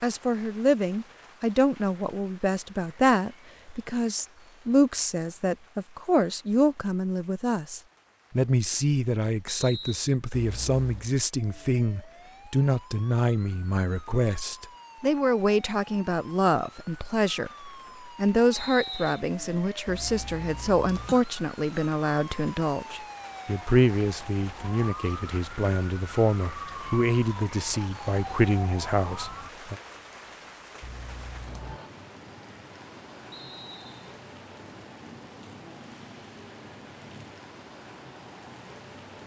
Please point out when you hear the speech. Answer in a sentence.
You can hear the speech from 0.0 to 29.8 s.